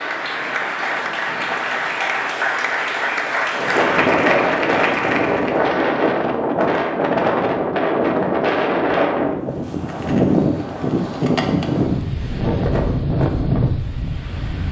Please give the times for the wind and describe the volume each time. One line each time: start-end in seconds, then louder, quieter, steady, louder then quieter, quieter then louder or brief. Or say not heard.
0.0-14.6 louder.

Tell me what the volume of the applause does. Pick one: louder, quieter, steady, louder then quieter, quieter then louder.
steady.